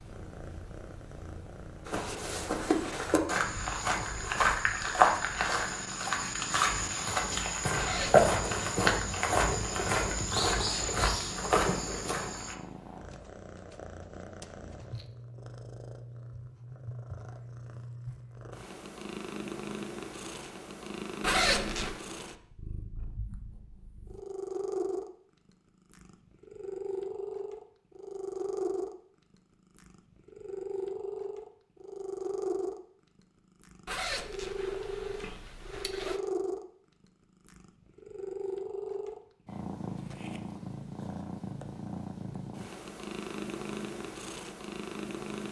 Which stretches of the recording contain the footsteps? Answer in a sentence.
The footsteps can be heard from 1.9 to 12.6 s.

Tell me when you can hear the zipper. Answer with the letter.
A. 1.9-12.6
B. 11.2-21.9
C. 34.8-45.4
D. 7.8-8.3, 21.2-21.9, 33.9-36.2
D.